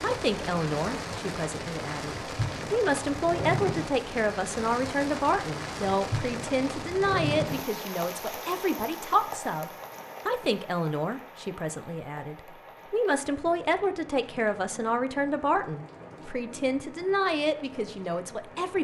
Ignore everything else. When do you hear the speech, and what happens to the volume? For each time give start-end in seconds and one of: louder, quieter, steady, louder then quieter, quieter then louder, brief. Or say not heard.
0.0-18.7 steady.